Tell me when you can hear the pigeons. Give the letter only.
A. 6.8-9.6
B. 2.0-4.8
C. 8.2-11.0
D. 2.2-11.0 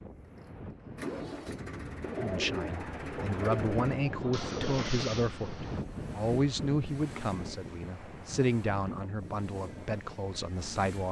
B.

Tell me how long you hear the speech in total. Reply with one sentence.
You can hear the speech for 9 seconds altogether.